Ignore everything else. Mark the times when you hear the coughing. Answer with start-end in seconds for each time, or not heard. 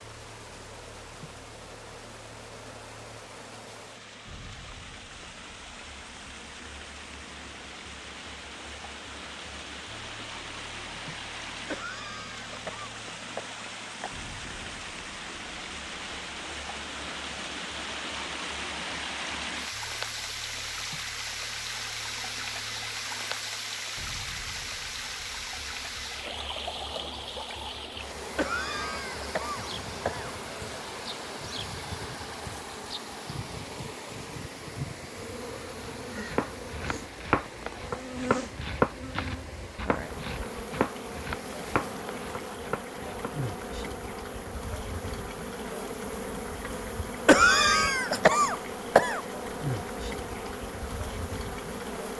11.7-14.2, 28.4-30.4, 47.2-49.2.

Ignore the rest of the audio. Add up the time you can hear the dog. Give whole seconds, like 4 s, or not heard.
not heard.